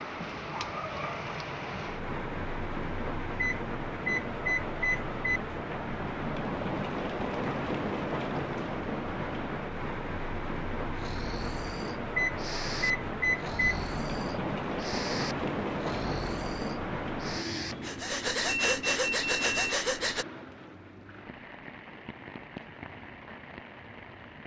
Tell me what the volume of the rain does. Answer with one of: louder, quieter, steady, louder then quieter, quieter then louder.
quieter.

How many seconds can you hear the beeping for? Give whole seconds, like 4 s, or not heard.
6 s.